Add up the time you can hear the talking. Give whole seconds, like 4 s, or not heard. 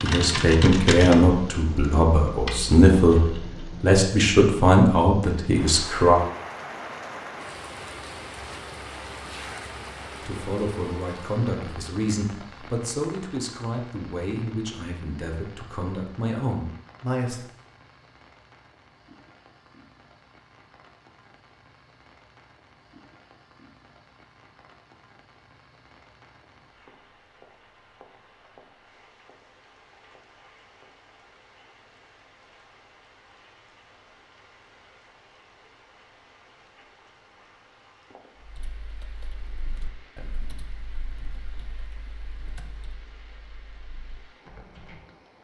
13 s.